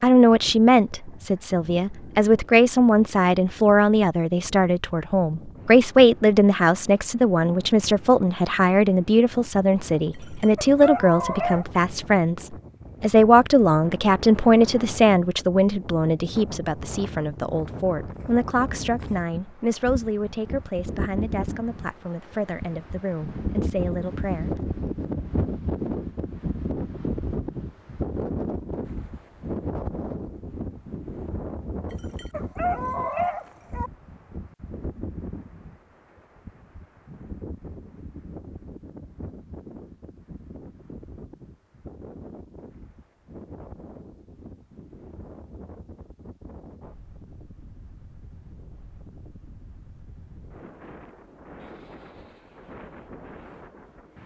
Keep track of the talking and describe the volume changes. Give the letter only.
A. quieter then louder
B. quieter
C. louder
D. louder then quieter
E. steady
B.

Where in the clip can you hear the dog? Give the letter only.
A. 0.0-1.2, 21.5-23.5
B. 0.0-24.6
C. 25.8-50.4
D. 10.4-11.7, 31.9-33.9
D.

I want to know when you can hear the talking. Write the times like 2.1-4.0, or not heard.
0.0-24.6.